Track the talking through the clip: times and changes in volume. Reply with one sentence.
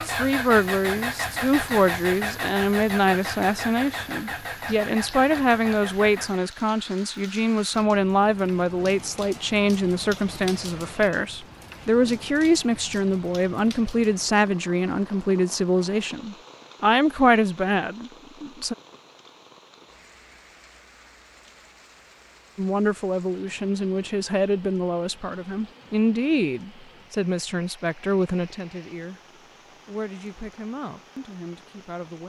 The talking can be heard from 0.0 to 18.8 s, at a steady volume; and from 22.6 to 32.2 s, getting quieter.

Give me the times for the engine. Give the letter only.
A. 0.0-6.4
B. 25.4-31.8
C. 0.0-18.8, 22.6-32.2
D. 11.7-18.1
A.